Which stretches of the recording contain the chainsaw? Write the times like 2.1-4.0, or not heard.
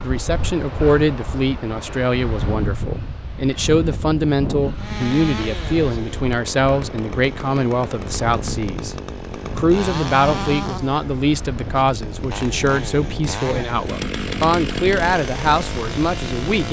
4.8-16.6.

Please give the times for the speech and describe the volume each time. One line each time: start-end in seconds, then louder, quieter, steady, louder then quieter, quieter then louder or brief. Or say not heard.
0.0-16.6 steady.